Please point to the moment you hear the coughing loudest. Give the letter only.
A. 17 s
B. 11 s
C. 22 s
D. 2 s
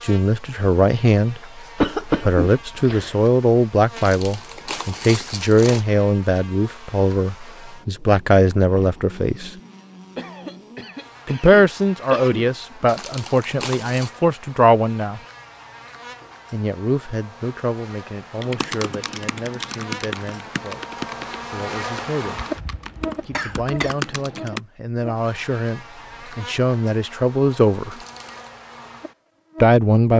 D.